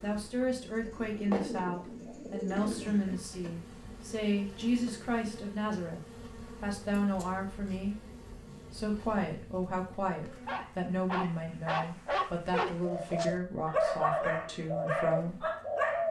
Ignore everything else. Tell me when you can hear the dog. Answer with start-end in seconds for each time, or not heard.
10.4-16.0.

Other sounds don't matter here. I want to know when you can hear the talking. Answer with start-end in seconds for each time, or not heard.
0.0-8.0, 8.7-15.4.